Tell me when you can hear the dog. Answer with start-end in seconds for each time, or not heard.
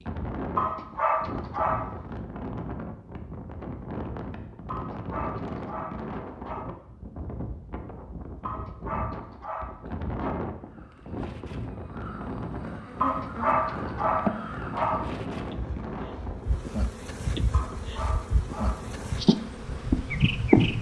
0.6-1.9, 4.7-6.7, 8.4-10.4, 13.0-15.0, 17.5-18.9.